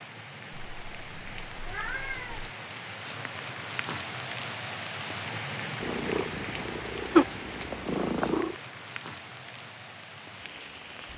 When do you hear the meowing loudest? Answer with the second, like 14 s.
7 s.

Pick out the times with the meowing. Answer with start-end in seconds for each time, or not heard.
0.6-2.5, 5.8-8.6.